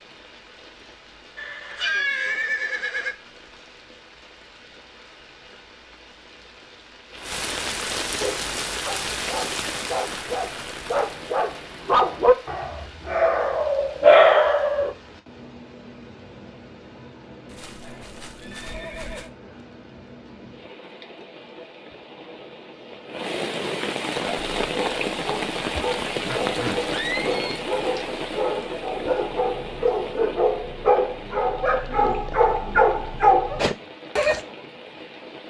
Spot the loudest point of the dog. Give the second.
14 s.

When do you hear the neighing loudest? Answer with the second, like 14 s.
2 s.